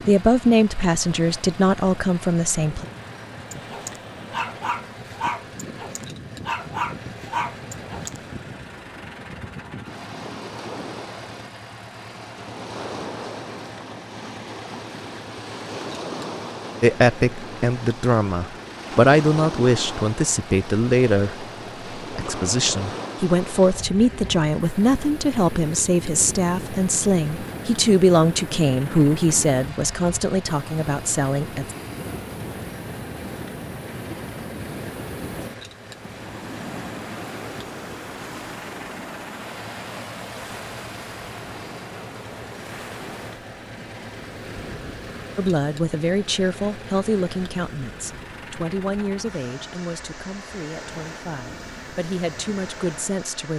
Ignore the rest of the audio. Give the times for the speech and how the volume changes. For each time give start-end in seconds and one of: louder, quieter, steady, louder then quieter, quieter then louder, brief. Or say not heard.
0.1-2.9 brief
16.8-31.8 steady
45.4-53.5 quieter then louder.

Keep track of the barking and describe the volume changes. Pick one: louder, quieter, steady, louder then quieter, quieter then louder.
quieter then louder.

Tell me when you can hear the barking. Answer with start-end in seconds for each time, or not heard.
3.5-8.2.